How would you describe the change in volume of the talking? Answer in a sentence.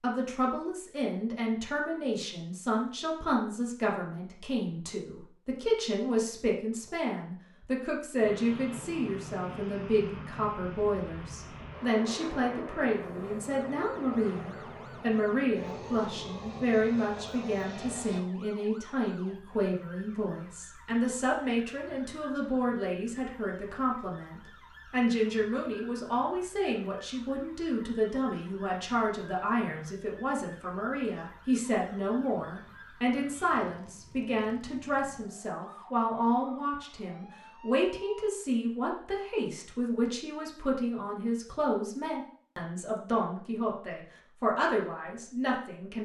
The volume of the talking stays about the same.